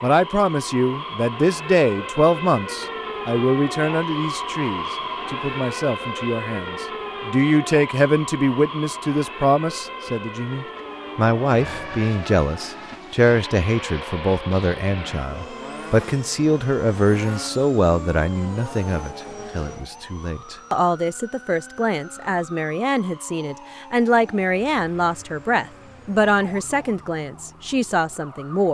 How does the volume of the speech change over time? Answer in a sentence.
The volume of the speech stays about the same.